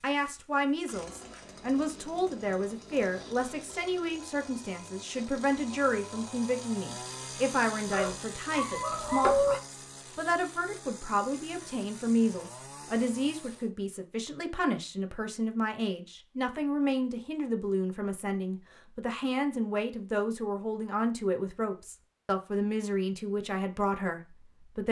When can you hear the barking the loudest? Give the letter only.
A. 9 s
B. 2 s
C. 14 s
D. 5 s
A.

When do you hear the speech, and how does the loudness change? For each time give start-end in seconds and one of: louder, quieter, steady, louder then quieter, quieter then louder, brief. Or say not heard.
0.0-24.8 steady.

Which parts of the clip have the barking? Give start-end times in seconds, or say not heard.
7.8-9.6.